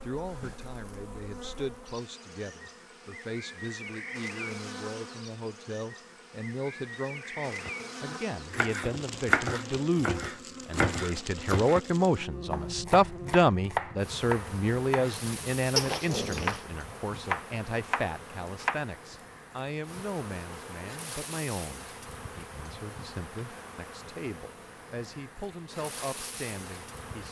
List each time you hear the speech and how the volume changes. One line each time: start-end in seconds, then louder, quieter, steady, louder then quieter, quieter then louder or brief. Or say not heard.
0.0-27.2 louder then quieter.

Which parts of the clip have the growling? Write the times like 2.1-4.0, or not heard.
15.8-16.6.